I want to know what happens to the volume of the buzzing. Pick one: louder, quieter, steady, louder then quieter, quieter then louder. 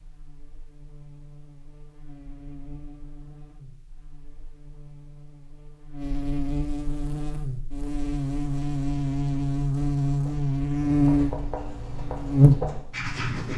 louder.